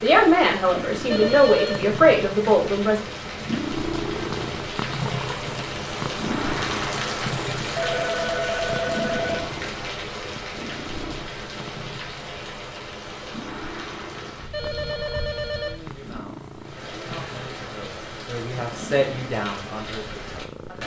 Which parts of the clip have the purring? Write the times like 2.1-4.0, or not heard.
0.0-20.8.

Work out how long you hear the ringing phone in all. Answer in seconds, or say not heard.
4 s.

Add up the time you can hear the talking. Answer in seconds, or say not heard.
8 s.